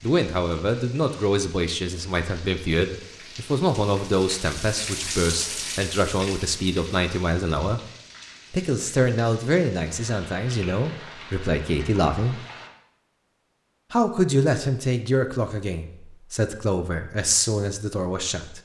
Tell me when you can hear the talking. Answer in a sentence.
The talking can be heard from 0.0 to 7.8 s, from 8.5 to 12.4 s and from 13.9 to 18.6 s.